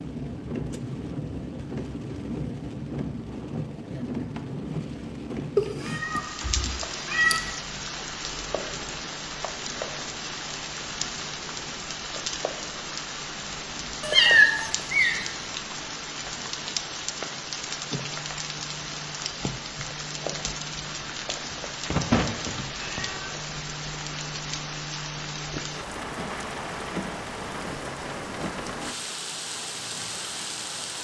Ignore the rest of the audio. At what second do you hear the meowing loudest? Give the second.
14 s.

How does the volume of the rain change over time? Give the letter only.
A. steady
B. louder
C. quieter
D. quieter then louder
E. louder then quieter
A.